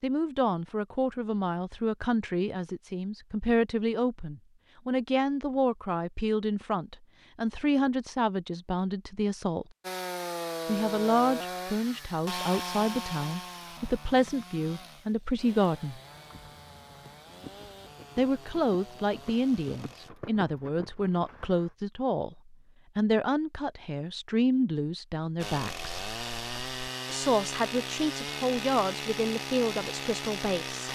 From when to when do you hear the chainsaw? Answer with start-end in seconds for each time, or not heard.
9.8-20.1, 25.4-30.8.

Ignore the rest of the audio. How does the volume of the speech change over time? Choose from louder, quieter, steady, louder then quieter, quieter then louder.
steady.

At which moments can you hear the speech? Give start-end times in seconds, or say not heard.
0.0-9.7, 10.7-16.0, 18.1-26.1, 27.1-30.8.